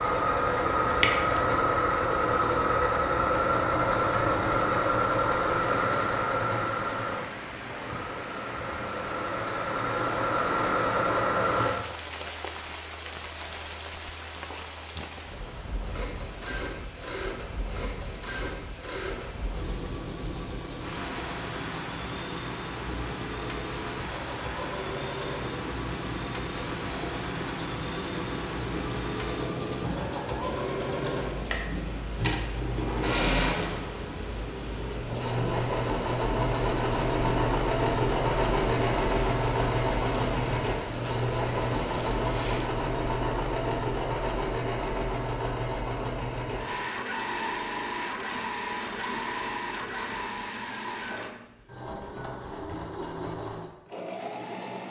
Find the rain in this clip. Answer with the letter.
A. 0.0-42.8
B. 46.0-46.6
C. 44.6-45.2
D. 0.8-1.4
A.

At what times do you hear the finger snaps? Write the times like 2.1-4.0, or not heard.
0.8-1.4.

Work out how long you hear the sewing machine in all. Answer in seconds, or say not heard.
51 s.